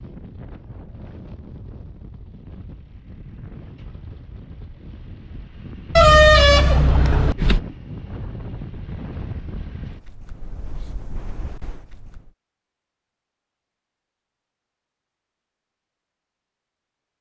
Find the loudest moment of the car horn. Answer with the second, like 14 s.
6 s.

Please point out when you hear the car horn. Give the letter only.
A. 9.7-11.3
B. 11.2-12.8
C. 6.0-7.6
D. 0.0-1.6
C.